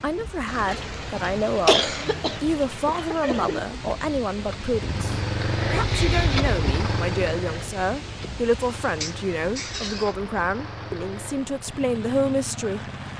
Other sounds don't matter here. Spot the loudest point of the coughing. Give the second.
2 s.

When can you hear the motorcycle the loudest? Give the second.
6 s.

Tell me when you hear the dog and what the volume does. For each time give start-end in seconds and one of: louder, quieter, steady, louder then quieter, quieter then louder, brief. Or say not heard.
not heard.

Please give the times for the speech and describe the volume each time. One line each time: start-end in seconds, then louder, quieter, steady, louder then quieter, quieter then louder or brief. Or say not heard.
0.0-12.8 steady.